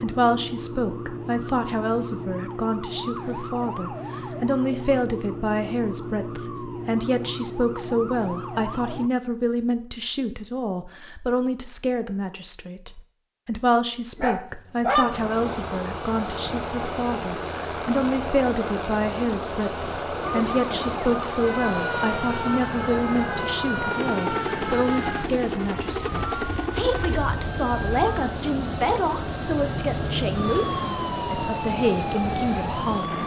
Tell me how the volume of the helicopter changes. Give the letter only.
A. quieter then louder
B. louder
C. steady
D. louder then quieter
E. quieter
C.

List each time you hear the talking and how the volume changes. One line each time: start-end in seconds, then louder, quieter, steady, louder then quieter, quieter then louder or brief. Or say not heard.
0.0-33.2 steady.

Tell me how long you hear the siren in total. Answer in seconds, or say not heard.
22 s.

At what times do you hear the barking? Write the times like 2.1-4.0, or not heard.
14.2-15.3.